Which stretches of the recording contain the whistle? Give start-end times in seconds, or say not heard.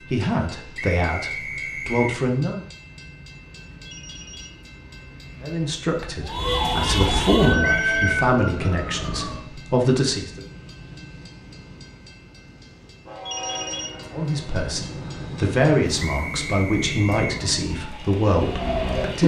0.8-2.2, 7.6-8.2, 15.9-17.4.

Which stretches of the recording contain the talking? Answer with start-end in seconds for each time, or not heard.
0.0-2.6, 5.4-10.4, 14.1-19.2.